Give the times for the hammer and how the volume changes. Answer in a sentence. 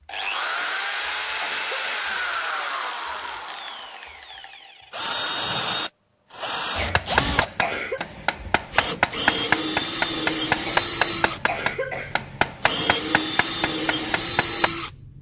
You can hear the hammer from 6.9 to 14.7 s, getting louder then quieter.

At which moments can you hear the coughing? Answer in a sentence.
The coughing can be heard from 0.6 to 2.2 s, from 6.8 to 8.0 s and from 10.7 to 12.3 s.